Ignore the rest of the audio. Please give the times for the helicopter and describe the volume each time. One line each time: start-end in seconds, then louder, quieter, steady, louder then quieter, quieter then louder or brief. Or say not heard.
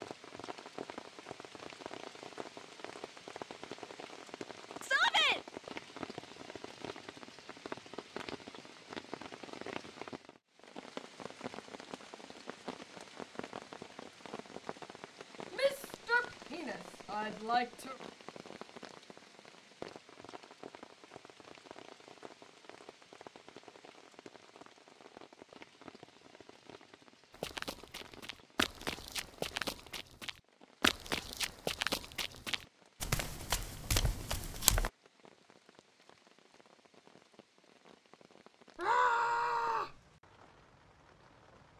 not heard.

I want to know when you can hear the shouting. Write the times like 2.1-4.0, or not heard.
4.8-5.4, 15.5-17.9, 38.8-40.0.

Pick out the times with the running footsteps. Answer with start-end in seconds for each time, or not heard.
27.4-34.9.